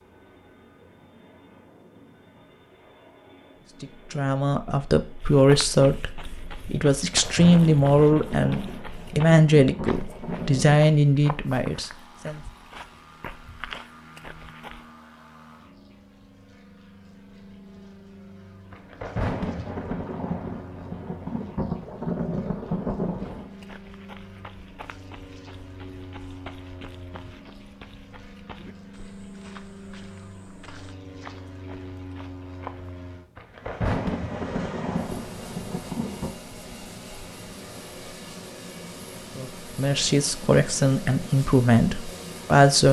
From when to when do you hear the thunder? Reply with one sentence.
You can hear the thunder from 7.1 to 10.8 s, from 18.7 to 23.6 s and from 33.4 to 36.3 s.